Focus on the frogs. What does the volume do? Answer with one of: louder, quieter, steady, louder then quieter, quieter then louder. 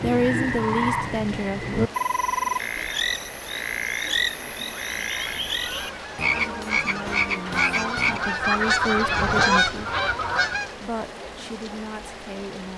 steady.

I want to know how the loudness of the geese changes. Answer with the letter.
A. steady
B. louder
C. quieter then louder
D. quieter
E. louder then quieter
B.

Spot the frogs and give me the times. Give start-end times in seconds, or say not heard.
0.0-9.6.